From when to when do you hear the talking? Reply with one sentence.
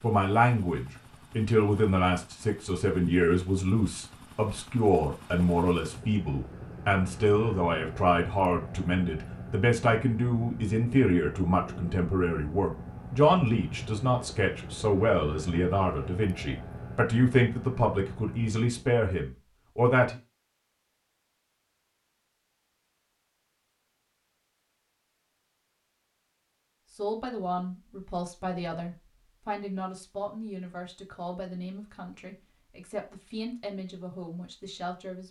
The talking can be heard from 0.0 to 20.1 s and from 26.9 to 35.2 s.